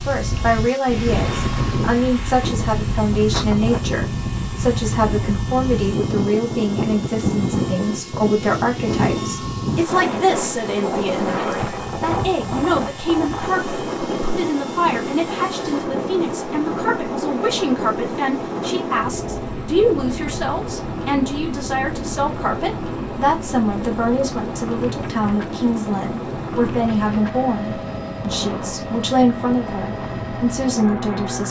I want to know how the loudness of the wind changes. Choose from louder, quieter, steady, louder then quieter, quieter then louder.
quieter.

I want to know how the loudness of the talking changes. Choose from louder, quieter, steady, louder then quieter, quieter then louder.
steady.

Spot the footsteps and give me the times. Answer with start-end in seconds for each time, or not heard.
not heard.